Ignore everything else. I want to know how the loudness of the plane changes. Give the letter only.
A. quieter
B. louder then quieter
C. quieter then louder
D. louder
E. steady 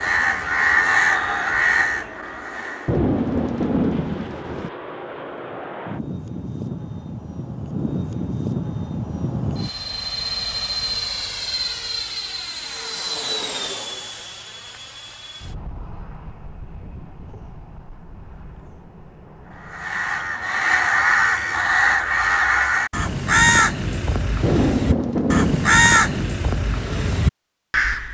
B.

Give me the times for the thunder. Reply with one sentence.
You can hear the thunder from 2.9 to 4.7 s and from 24.4 to 26.2 s.